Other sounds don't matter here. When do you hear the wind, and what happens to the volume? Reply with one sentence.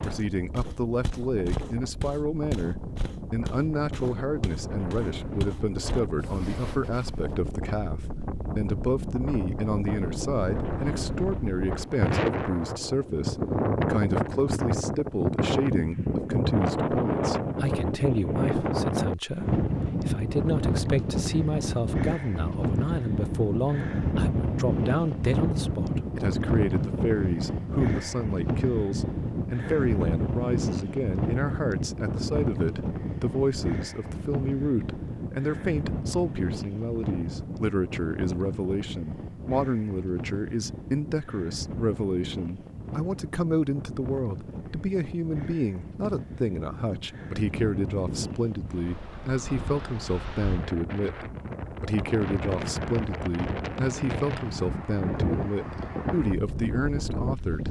You can hear the wind from 0.0 to 57.6 s, getting louder then quieter.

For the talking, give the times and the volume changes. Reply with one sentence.
The talking can be heard from 0.0 to 57.6 s, at a steady volume.